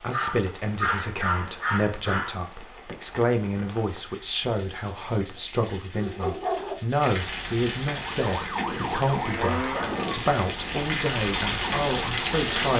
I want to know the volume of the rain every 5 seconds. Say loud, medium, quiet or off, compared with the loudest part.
quiet, medium, loud.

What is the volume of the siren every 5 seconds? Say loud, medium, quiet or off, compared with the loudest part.
off, loud, medium.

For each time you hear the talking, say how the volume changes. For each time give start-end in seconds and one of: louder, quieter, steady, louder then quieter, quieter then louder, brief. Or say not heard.
0.0-12.7 steady.